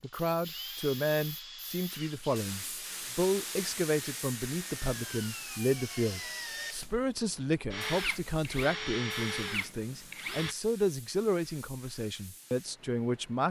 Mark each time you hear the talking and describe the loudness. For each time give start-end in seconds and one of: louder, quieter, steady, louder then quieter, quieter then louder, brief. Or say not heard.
0.0-13.4 steady.